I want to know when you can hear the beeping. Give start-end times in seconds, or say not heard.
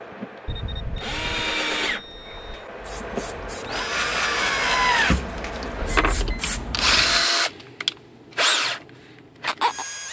0.5-2.6, 5.8-6.2.